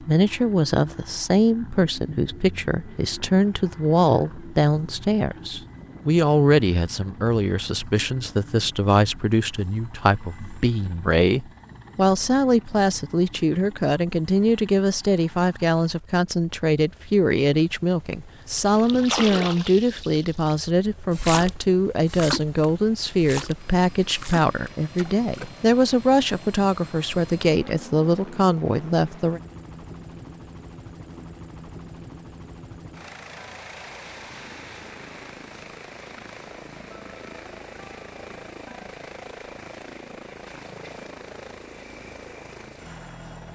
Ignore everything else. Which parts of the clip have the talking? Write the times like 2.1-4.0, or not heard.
0.0-29.4.